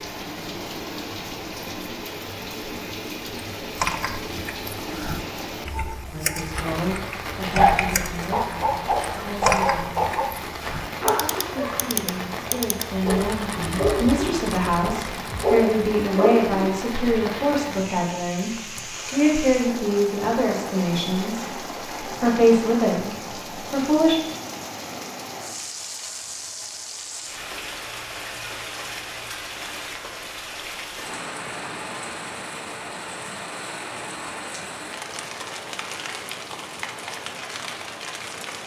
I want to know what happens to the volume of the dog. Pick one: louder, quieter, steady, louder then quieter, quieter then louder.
quieter then louder.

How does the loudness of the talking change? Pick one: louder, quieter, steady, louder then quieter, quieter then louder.
louder.